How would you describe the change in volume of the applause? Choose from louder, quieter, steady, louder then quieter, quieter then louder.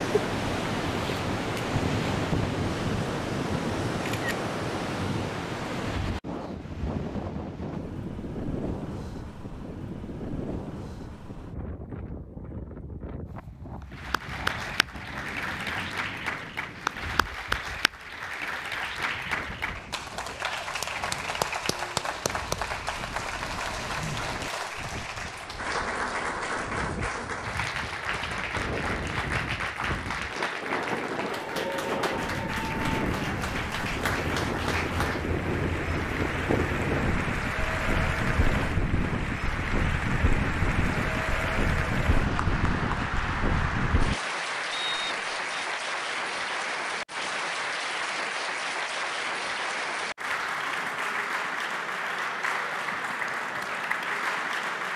steady.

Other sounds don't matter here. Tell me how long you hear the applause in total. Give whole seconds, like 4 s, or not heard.
41 s.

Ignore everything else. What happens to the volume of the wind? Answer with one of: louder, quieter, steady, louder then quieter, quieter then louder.
quieter then louder.